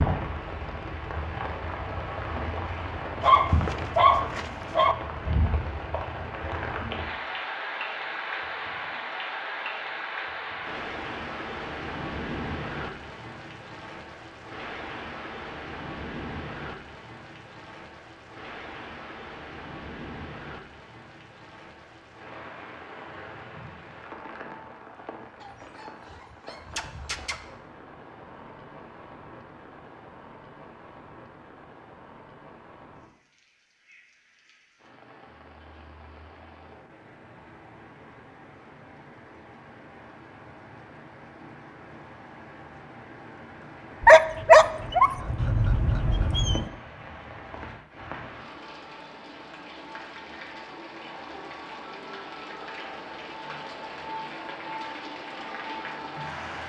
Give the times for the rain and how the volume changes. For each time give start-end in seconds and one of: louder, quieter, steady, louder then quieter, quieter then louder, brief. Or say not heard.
0.0-56.6 quieter then louder.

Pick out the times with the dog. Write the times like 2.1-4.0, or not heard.
3.2-5.0, 25.4-27.4, 44.0-46.6.